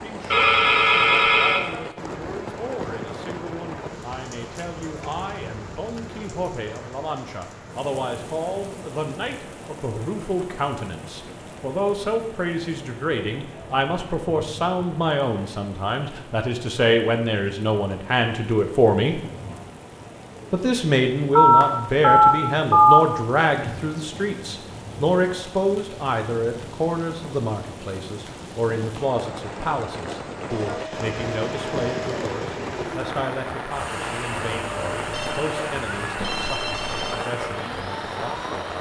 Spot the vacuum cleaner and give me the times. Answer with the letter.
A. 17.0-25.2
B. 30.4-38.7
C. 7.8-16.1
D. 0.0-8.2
B.